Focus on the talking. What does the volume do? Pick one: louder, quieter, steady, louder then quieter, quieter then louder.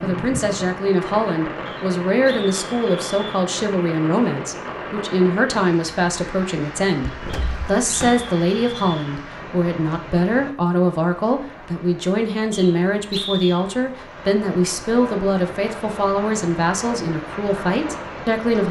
steady.